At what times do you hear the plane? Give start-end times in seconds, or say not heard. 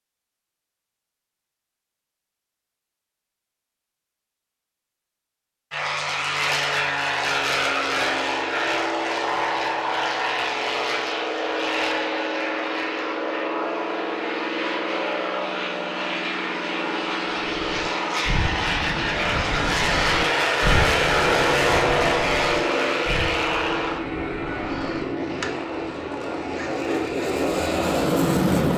5.7-28.7.